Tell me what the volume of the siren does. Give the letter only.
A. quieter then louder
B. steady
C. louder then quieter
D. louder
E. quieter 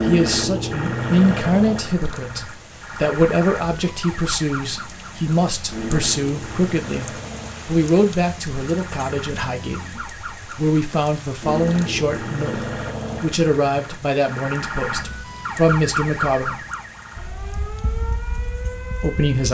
A.